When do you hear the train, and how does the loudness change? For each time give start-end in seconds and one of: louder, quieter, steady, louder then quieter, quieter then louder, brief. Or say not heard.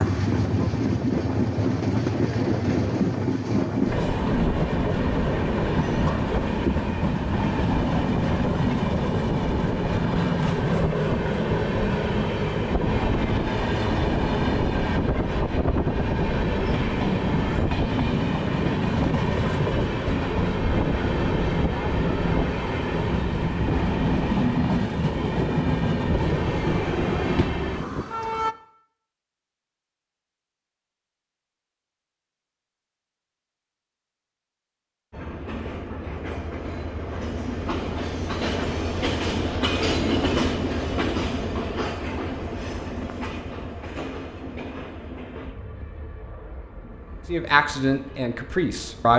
0.0-28.6 steady
35.1-49.1 louder then quieter.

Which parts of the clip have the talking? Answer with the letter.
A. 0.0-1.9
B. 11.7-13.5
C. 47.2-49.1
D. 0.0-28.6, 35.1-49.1
C.